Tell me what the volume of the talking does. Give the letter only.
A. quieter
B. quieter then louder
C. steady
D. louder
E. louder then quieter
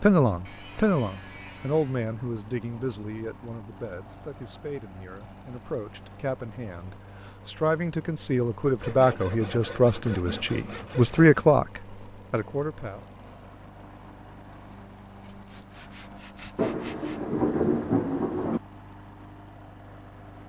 B.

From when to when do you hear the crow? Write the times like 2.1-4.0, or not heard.
not heard.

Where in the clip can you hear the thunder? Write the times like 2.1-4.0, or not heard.
16.6-18.6.